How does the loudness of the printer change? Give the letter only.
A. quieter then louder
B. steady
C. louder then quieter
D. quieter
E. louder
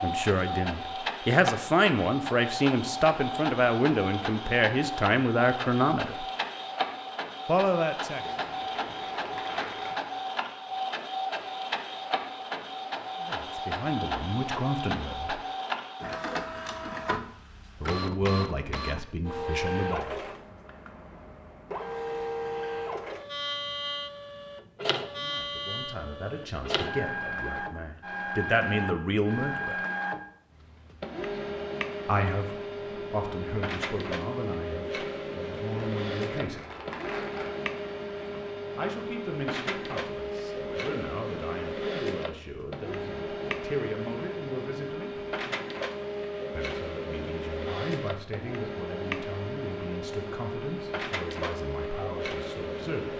B.